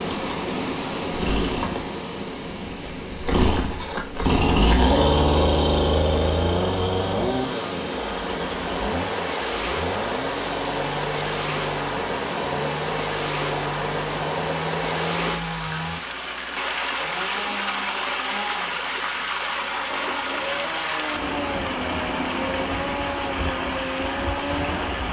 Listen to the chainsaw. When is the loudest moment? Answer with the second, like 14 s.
5 s.